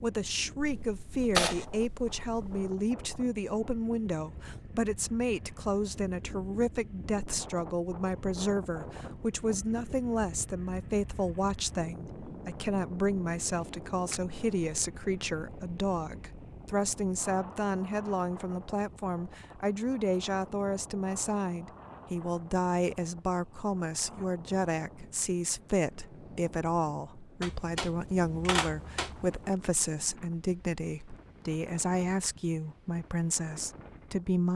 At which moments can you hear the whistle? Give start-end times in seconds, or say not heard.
not heard.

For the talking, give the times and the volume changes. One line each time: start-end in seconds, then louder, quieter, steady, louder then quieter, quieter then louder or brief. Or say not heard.
0.0-34.5 steady.